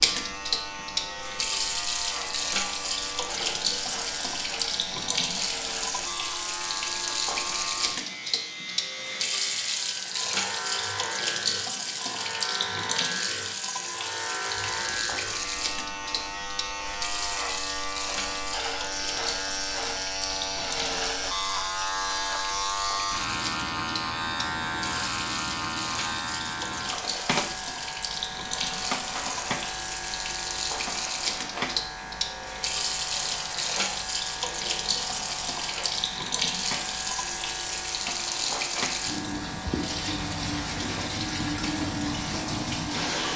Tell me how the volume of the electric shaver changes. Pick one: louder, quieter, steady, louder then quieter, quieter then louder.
louder then quieter.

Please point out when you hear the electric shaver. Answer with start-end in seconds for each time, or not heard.
0.0-43.3.